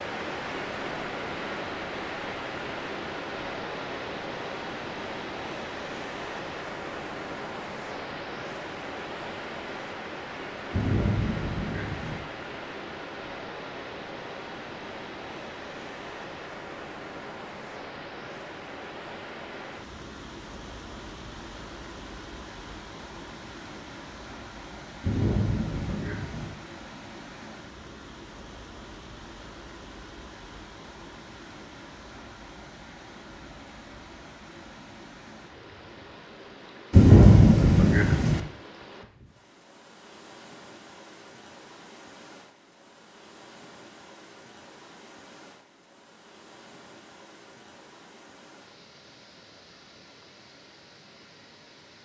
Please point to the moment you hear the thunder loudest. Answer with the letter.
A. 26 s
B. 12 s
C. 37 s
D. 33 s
C.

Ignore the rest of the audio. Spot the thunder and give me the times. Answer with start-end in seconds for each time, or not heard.
10.7-12.2, 25.0-26.5, 36.9-38.4.